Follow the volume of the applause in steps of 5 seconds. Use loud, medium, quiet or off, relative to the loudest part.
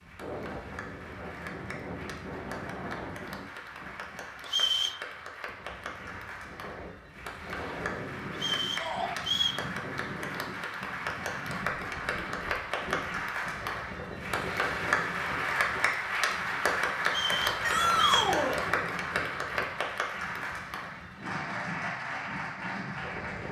quiet, medium, loud, loud, medium.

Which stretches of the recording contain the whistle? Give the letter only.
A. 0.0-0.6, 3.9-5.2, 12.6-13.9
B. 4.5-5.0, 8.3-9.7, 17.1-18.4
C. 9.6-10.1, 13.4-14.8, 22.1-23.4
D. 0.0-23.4
B.